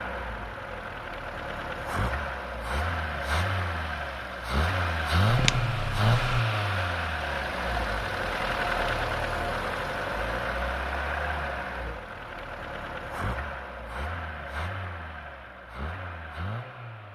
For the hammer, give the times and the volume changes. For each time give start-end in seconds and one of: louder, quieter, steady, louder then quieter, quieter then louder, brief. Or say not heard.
not heard.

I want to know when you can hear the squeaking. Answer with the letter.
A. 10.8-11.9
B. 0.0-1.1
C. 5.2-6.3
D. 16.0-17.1
C.